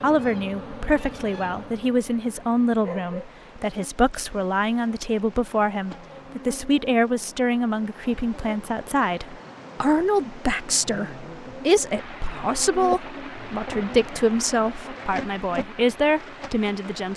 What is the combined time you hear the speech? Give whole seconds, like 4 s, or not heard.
17 s.